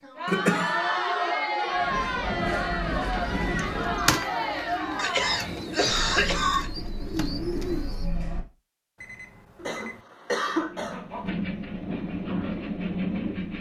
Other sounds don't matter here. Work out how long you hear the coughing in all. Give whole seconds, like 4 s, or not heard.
4 s.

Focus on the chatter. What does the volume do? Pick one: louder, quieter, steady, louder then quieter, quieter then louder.
quieter.